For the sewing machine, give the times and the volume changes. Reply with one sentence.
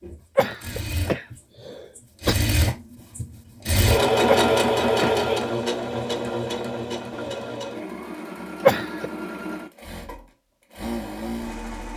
You can hear the sewing machine from 0.0 to 11.9 s, getting louder then quieter.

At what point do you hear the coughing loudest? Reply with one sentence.
The volume of the coughing peaks at 9 seconds.